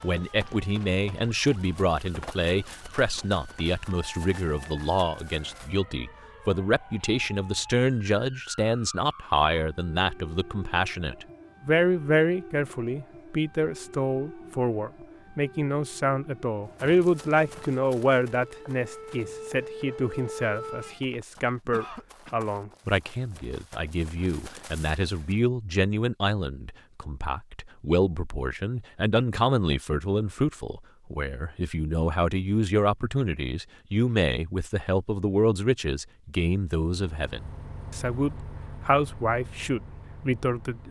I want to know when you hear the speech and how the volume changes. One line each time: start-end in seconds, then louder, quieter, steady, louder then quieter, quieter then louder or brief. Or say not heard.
0.0-40.8 steady.